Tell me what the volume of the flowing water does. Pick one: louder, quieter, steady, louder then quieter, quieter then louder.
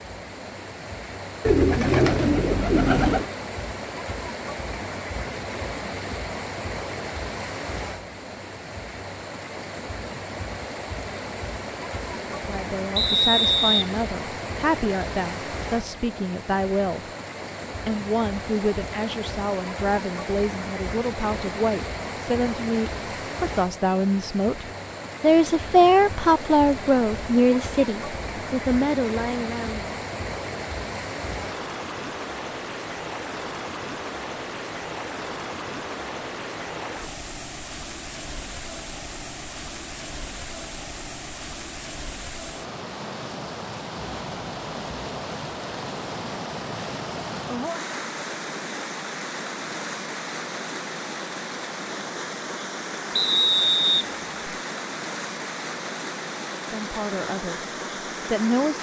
steady.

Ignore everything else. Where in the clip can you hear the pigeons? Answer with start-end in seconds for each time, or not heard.
1.4-3.3.